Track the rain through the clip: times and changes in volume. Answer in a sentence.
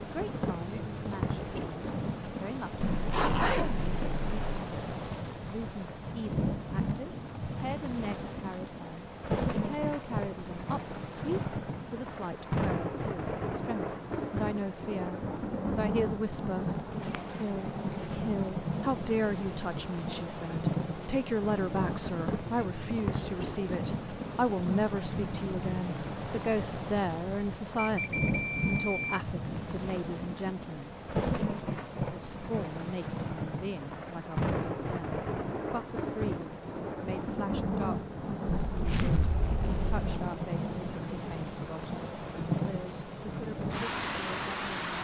You can hear the rain from 0.0 to 44.9 s, at a steady volume.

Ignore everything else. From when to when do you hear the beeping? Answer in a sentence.
You can hear the beeping from 27.8 to 29.2 s.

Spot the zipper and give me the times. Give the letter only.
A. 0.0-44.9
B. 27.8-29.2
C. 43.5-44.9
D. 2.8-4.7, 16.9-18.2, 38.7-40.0
D.